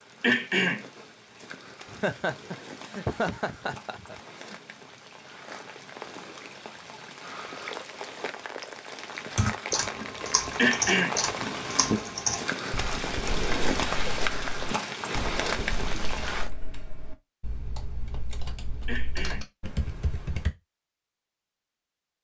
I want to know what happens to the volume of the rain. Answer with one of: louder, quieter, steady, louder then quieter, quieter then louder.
louder.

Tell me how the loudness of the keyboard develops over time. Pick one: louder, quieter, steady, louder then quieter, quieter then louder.
quieter then louder.